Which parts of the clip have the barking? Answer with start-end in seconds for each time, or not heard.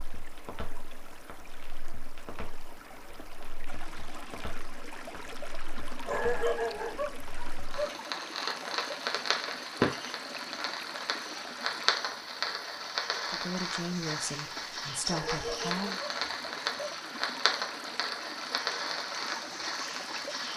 6.0-8.0, 15.1-16.9.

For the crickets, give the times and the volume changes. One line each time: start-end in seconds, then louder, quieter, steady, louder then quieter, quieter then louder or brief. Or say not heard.
not heard.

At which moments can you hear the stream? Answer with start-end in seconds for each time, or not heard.
0.0-20.5.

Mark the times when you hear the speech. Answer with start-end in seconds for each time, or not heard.
13.3-16.0.